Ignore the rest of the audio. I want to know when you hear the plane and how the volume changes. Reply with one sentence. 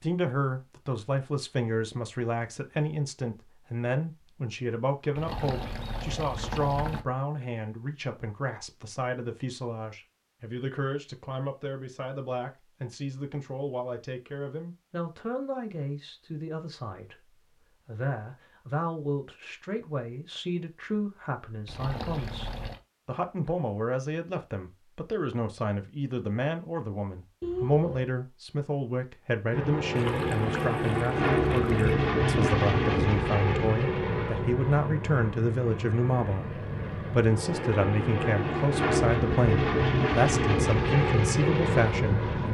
The plane can be heard from 29.5 to 42.4 s, getting quieter then louder.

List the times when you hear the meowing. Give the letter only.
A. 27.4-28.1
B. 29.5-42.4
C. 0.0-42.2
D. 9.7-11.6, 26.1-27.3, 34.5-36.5
A.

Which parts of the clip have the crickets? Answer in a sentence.
The crickets can't be heard in this clip.